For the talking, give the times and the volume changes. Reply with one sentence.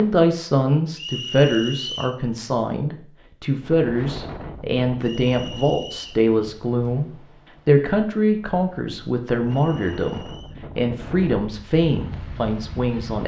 The talking can be heard from 0.0 to 13.2 s, at a steady volume.